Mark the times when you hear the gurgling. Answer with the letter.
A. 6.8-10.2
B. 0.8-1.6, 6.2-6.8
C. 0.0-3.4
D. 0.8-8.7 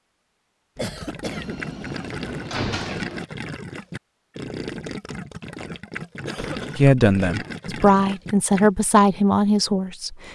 D.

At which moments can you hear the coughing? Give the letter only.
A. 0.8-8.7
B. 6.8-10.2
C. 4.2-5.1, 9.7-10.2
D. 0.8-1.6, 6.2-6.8
D.